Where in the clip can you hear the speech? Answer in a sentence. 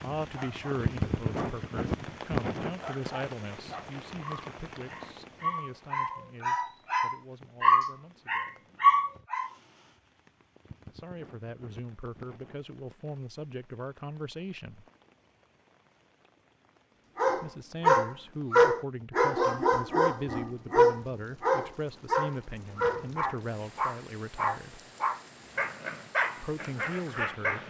The speech can be heard from 0.0 to 8.7 s, from 10.9 to 14.8 s, from 17.4 to 24.8 s and from 26.4 to 27.6 s.